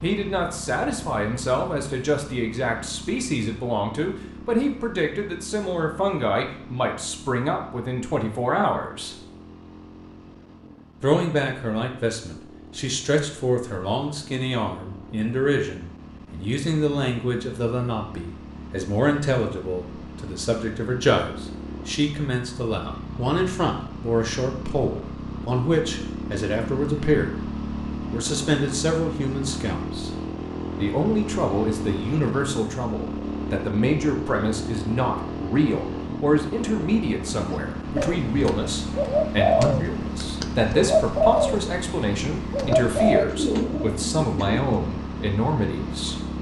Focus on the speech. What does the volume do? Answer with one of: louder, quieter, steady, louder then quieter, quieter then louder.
steady.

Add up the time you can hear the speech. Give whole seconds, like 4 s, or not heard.
44 s.